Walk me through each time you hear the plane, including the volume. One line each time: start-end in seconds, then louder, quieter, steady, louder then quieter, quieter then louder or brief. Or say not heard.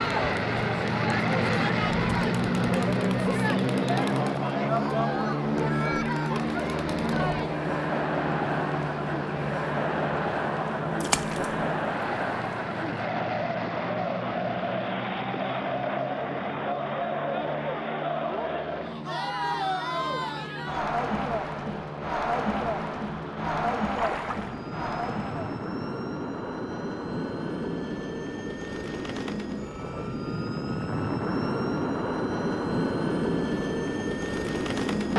0.0-35.1 quieter then louder.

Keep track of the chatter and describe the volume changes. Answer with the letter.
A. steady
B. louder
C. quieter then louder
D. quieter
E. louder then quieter
A.